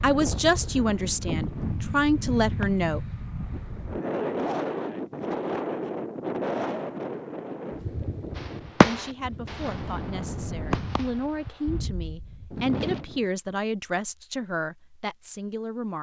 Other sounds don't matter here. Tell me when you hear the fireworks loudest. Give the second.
9 s.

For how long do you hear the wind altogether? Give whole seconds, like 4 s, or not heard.
13 s.